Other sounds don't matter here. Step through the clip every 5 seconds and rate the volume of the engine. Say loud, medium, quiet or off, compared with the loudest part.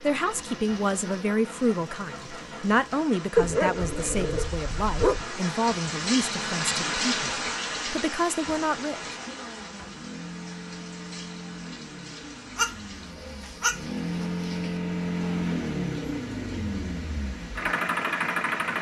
quiet, quiet, medium, loud.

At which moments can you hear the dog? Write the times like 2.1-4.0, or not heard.
3.4-5.2, 12.6-14.2.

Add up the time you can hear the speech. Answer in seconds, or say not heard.
9 s.